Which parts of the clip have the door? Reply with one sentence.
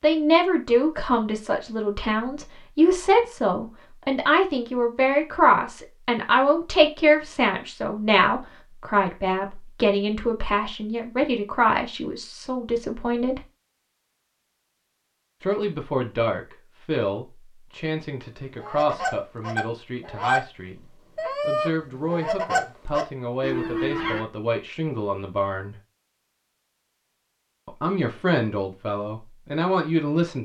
The door can't be heard in this clip.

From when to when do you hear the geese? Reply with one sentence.
The geese can be heard from 18.4 to 24.2 s.